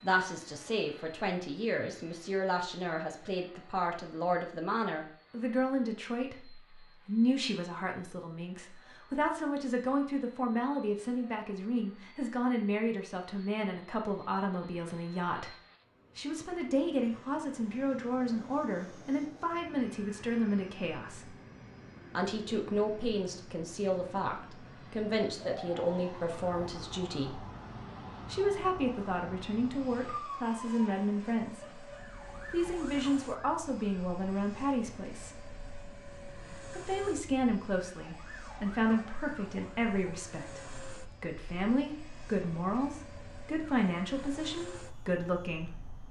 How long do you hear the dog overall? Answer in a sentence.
The dog can't be heard in this clip.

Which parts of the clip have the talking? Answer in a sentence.
You can hear the talking from 0.0 to 15.5 s, from 16.1 to 21.3 s, from 22.1 to 27.4 s, from 28.3 to 31.8 s, from 32.5 to 35.4 s and from 36.7 to 45.8 s.